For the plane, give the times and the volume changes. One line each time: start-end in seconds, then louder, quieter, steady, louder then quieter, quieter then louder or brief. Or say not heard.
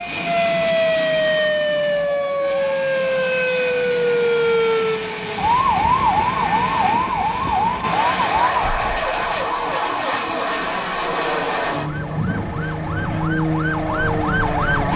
0.0-14.9 louder.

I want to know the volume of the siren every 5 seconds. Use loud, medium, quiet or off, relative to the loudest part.
loud, loud, medium.